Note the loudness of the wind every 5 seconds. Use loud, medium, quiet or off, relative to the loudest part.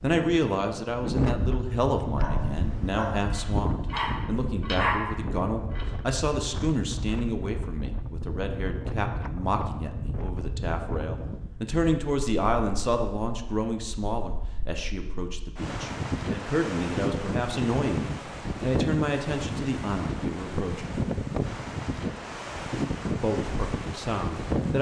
loud, medium, medium, loud, loud.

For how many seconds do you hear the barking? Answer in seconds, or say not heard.
4 s.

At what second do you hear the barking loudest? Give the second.
5 s.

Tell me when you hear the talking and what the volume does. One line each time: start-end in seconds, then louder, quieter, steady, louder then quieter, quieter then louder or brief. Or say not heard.
0.0-21.0 steady
23.1-24.7 brief.